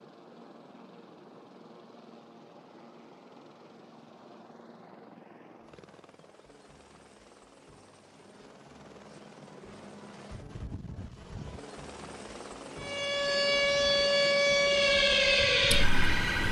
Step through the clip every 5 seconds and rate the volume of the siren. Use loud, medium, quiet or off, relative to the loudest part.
off, off, loud, loud.